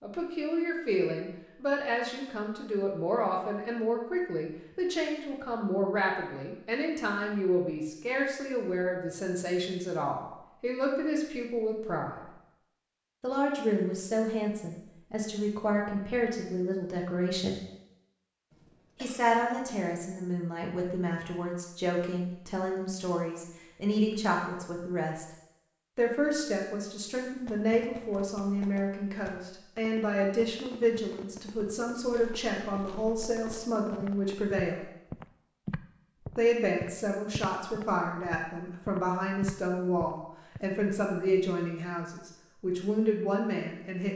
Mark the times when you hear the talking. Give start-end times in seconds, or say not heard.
0.0-12.3, 13.2-17.6, 19.0-25.2, 25.9-34.9, 36.4-44.1.